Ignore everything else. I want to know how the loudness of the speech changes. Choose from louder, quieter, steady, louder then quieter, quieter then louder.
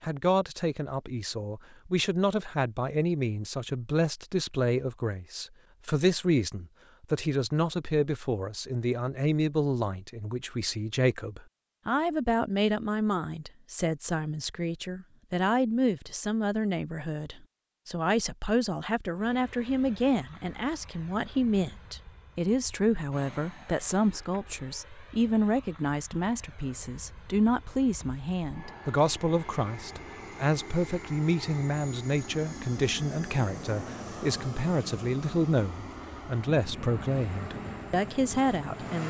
steady.